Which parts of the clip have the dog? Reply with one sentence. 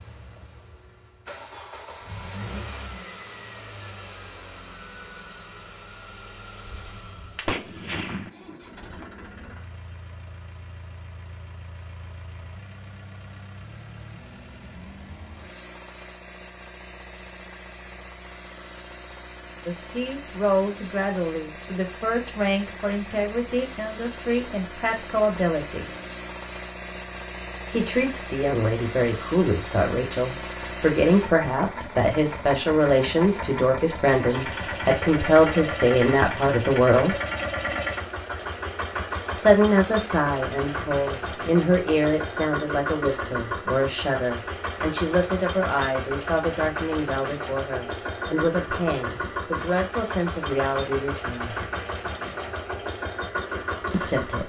You can't hear the dog here.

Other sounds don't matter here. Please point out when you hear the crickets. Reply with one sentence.
You can't hear the crickets here.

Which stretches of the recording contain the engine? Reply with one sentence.
You can hear the engine from 0.0 to 54.4 s.